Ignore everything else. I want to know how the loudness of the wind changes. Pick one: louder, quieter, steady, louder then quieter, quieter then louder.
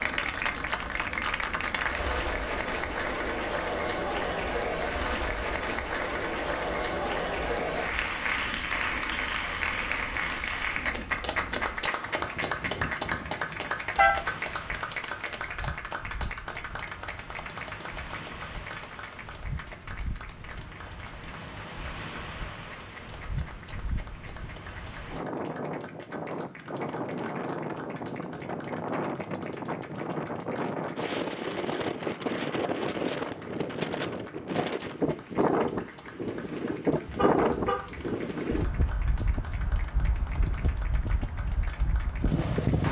louder.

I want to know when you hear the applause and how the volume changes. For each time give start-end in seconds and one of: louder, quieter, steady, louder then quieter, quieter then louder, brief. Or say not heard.
0.0-42.8 quieter.